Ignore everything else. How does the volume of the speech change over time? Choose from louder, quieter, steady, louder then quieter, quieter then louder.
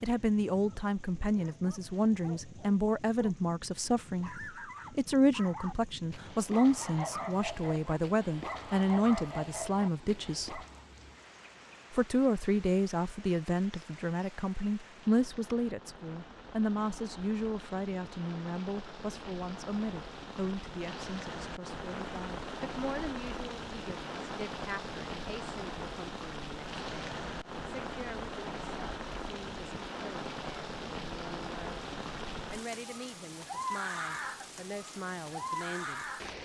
quieter.